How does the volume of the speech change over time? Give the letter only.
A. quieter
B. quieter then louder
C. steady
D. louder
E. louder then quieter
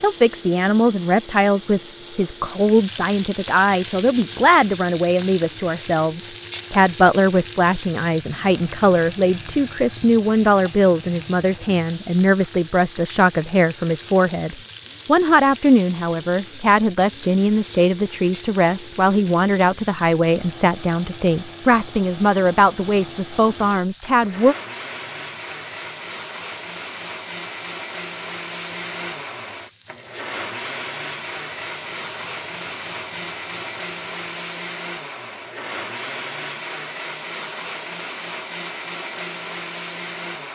C.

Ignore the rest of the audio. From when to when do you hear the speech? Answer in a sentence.
The speech can be heard from 0.0 to 24.6 s.